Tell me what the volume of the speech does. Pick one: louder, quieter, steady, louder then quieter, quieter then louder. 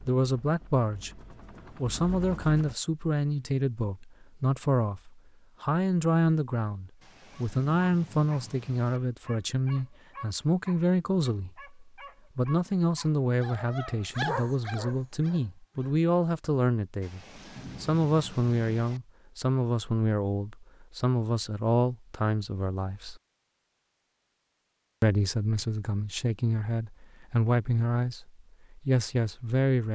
steady.